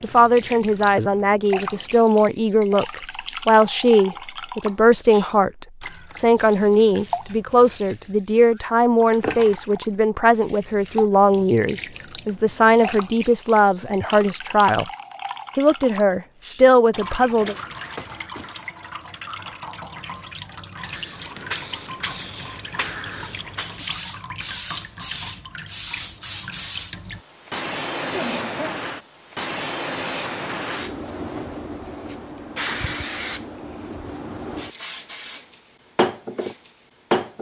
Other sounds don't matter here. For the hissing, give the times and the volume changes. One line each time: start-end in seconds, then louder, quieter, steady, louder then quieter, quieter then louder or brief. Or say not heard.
20.8-37.3 steady.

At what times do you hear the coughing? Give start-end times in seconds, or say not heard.
28.1-28.8.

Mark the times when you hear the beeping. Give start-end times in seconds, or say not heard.
17.4-18.6.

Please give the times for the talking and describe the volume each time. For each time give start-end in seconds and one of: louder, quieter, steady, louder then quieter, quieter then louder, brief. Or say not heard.
0.0-14.8 steady
15.6-17.6 brief.